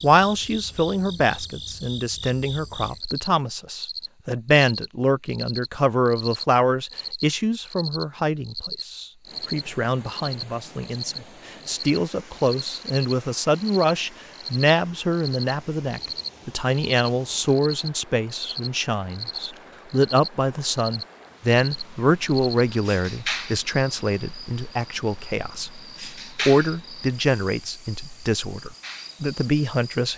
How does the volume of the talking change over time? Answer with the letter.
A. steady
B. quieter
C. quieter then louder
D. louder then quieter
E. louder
A.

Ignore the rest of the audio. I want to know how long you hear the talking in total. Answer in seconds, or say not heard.
30 s.